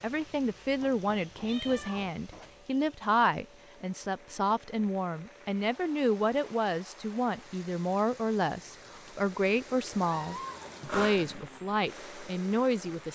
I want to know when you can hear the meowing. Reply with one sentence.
The meowing can be heard from 1.4 to 2.1 s and from 10.0 to 11.4 s.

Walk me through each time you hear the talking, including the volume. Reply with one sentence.
The talking can be heard from 0.0 to 13.1 s, at a steady volume.